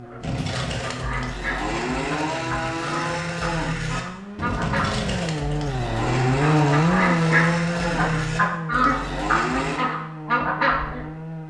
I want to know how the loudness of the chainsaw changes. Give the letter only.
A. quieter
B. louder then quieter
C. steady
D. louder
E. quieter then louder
B.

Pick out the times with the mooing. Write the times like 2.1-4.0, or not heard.
0.2-9.8.